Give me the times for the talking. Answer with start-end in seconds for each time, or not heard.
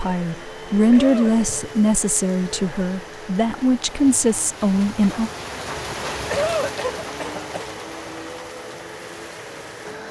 0.0-5.3.